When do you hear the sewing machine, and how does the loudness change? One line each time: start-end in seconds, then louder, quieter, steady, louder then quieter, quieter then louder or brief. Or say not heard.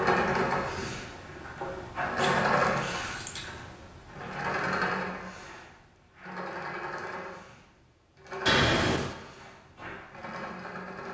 0.0-11.0 quieter.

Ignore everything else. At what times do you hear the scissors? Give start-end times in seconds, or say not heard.
2.1-3.5, 8.4-9.2.